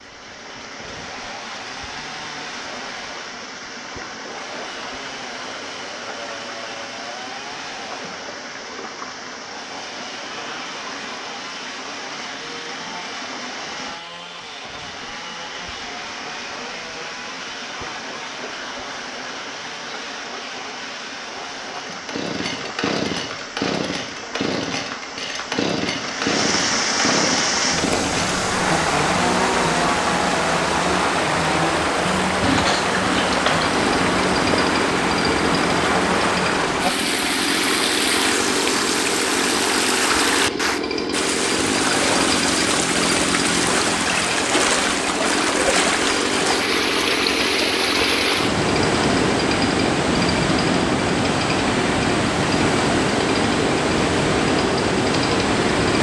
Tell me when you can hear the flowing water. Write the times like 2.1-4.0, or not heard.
0.0-55.9.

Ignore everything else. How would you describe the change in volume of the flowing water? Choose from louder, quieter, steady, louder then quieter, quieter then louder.
louder.